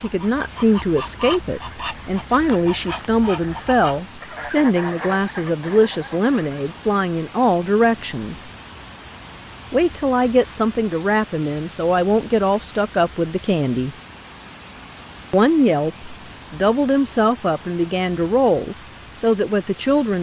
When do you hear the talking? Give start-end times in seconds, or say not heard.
0.0-8.5, 9.7-13.9, 15.3-20.1.